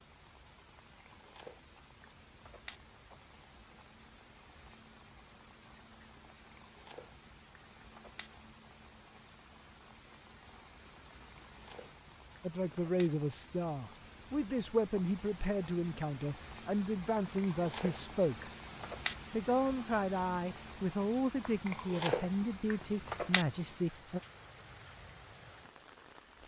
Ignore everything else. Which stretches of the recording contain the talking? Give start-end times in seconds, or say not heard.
12.4-18.5, 19.3-24.2.